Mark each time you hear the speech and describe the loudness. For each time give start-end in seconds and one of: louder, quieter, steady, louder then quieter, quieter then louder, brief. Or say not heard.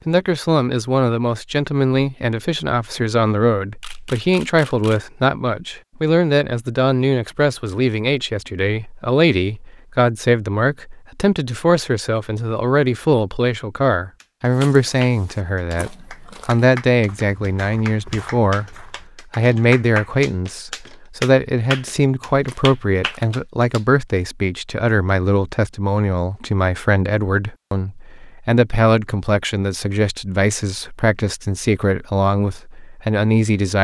0.1-33.7 steady.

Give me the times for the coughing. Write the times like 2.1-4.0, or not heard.
not heard.